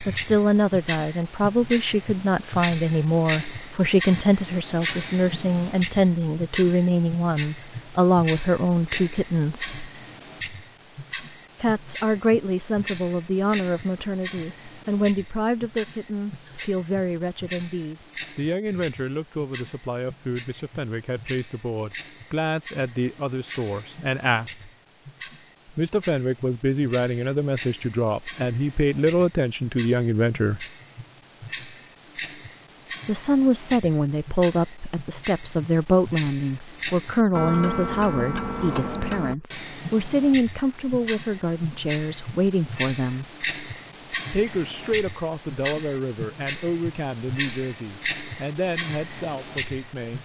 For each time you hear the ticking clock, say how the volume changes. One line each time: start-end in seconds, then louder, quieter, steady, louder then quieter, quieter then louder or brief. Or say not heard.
0.0-50.2 quieter then louder.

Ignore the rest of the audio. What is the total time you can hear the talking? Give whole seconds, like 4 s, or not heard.
44 s.